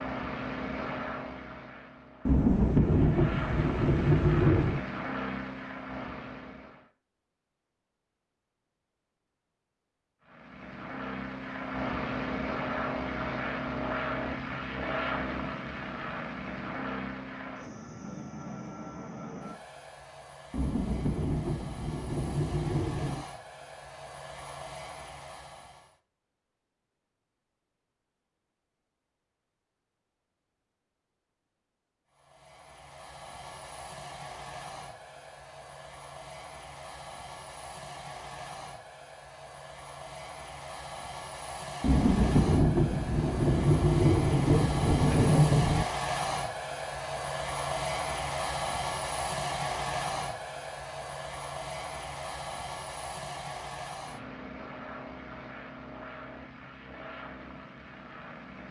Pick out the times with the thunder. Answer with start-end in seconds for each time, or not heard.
2.2-4.8, 20.5-23.2, 41.8-45.9.